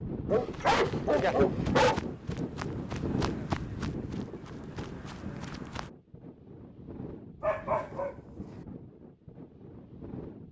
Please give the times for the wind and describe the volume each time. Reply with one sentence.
The wind can be heard from 0.0 to 10.4 s, getting quieter.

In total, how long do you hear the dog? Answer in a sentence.
The dog can be heard for 3 seconds in total.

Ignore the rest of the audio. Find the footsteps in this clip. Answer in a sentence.
The footsteps can be heard from 0.5 to 5.9 s.